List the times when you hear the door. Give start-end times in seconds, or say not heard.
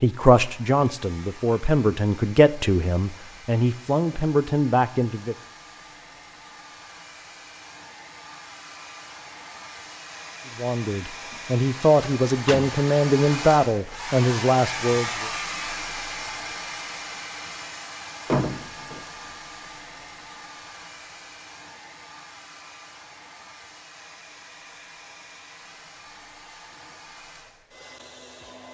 12.0-12.7, 18.2-19.0.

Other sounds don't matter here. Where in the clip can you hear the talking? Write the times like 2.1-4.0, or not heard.
0.0-5.3, 10.6-15.3.